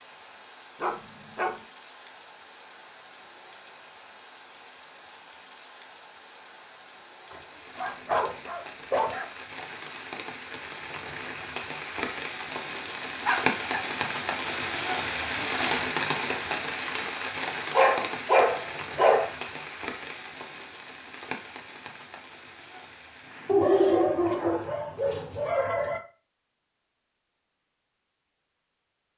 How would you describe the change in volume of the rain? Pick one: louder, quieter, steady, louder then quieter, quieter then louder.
louder then quieter.